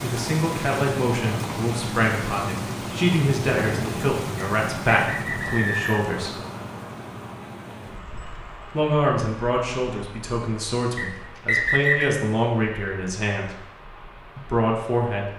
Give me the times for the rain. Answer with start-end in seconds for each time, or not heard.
0.0-15.3.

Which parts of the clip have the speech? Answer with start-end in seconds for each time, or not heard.
0.0-6.3, 8.7-13.6, 14.3-15.3.